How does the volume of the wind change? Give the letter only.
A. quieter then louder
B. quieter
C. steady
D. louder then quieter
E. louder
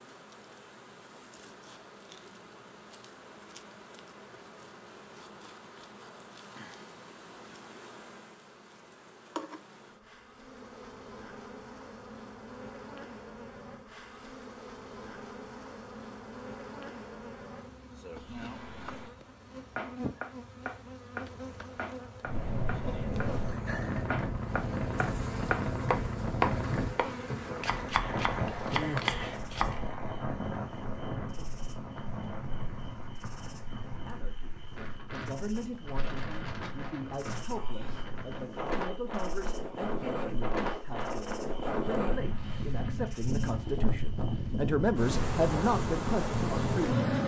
A.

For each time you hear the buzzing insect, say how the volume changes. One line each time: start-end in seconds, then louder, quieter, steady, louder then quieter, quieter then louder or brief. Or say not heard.
0.0-47.2 louder.